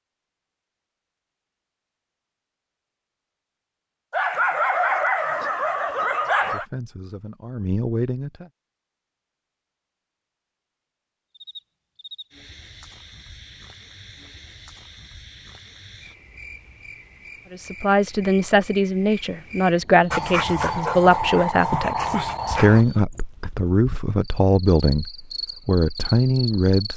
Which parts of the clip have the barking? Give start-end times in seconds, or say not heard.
4.1-6.7, 20.1-22.9.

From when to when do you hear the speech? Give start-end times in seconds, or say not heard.
6.5-8.4, 17.5-26.9.